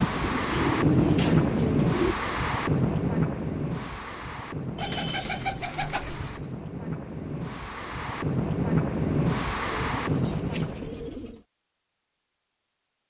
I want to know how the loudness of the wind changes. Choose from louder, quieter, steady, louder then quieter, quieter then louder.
quieter then louder.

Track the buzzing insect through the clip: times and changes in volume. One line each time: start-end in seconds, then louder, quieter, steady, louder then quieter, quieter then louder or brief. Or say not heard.
not heard.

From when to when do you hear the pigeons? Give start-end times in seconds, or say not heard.
0.1-2.1, 4.8-6.5, 9.8-11.4.